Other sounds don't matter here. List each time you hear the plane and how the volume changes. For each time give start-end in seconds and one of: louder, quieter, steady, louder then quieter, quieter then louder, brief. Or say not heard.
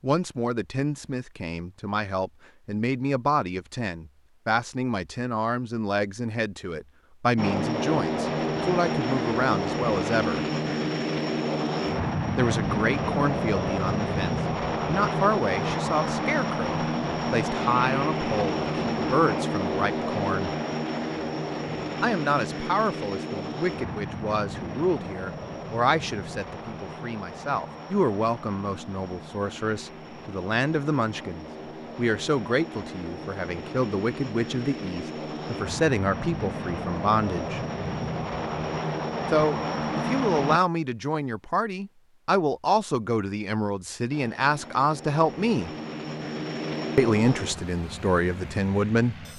7.3-40.6 quieter then louder
44.1-49.3 louder then quieter.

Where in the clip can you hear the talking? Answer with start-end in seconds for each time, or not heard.
0.0-10.4, 12.3-20.5, 22.0-37.6, 39.3-45.7, 47.0-49.1.